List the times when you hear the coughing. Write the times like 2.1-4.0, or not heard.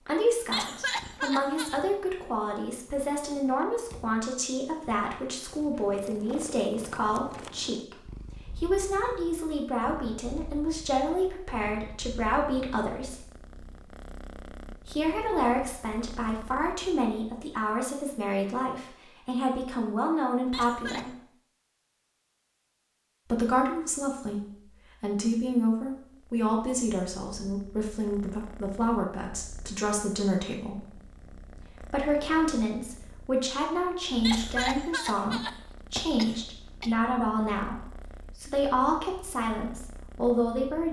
0.5-1.8, 20.5-21.1, 34.2-37.0.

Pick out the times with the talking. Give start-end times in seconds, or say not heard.
0.1-13.3, 14.8-21.1, 23.2-30.9, 31.6-40.8.